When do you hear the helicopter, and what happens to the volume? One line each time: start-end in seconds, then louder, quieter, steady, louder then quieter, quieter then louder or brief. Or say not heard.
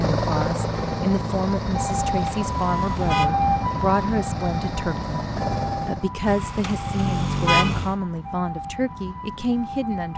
0.0-6.1 quieter then louder.